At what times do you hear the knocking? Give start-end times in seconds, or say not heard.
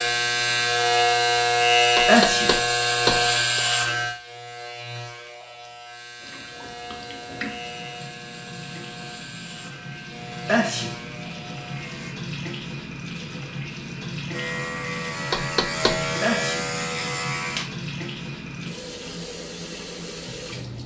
1.9-3.6, 15.3-16.1.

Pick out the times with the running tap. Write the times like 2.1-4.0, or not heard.
6.2-20.8.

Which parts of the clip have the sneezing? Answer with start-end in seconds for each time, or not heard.
2.0-2.5, 10.4-10.9, 16.2-16.6.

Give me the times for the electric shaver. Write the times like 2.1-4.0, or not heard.
0.0-12.2, 14.3-17.6.